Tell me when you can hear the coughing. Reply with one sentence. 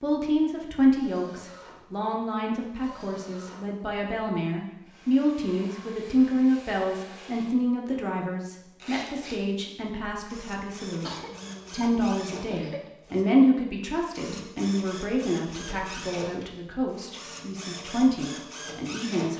The coughing can be heard from 11.0 to 12.9 s.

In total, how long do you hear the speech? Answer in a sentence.
You can hear the speech for 19 seconds altogether.